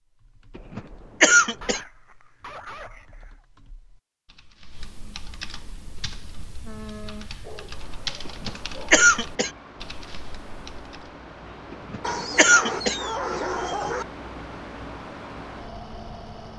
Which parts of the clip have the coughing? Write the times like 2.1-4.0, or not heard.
0.6-1.8, 8.2-9.5, 11.7-13.0.